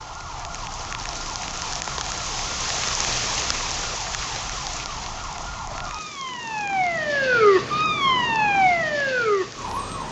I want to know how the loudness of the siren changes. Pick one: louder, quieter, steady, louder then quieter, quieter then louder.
louder.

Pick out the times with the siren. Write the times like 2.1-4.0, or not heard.
0.0-10.0.